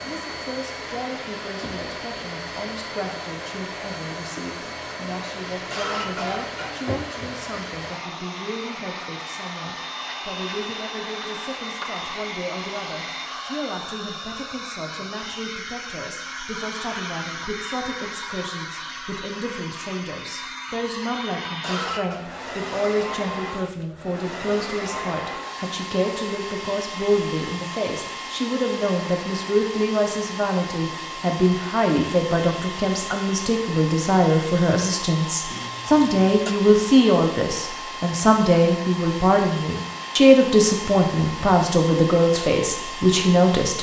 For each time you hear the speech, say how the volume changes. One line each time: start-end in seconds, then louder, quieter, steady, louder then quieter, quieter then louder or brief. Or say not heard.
0.1-43.7 louder.